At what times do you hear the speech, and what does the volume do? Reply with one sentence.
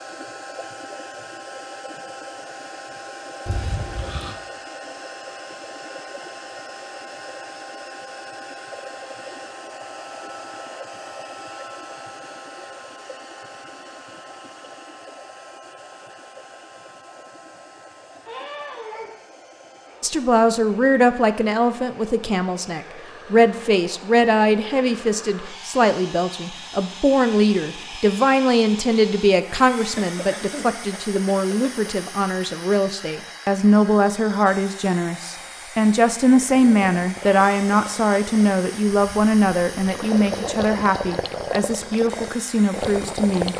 The speech can be heard from 20.0 to 43.5 s, at a steady volume.